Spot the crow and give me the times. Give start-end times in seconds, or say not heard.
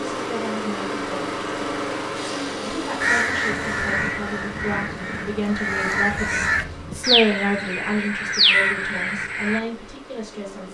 3.0-9.6.